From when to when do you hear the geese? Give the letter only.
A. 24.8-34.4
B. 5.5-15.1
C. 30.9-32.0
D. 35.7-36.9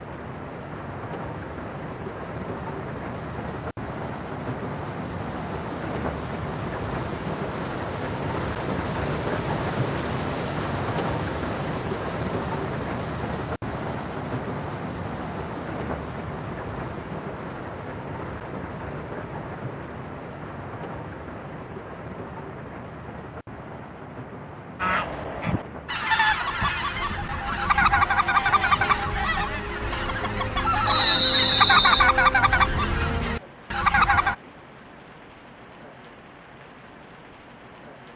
A.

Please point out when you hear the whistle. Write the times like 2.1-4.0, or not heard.
30.9-32.0.